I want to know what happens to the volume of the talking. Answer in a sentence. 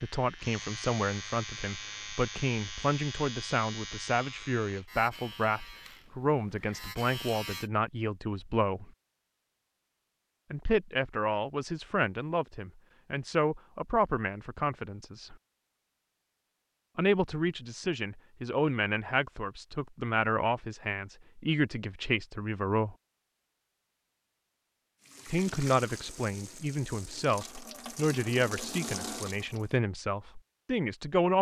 The volume of the talking stays about the same.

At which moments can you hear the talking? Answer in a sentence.
The talking can be heard from 0.0 to 8.9 s, from 10.5 to 15.3 s, from 16.9 to 22.9 s and from 25.2 to 31.3 s.